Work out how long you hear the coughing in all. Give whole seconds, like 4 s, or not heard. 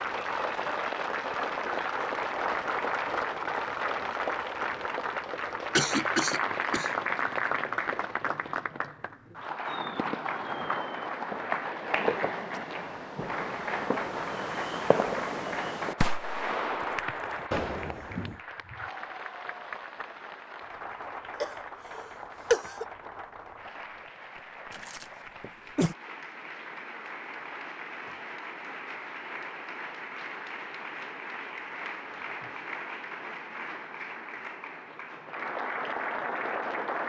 4 s.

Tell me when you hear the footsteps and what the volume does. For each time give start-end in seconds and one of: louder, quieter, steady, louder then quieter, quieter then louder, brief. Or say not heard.
not heard.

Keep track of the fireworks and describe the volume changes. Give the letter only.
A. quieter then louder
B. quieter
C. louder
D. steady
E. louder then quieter
C.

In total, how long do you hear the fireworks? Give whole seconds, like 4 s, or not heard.
9 s.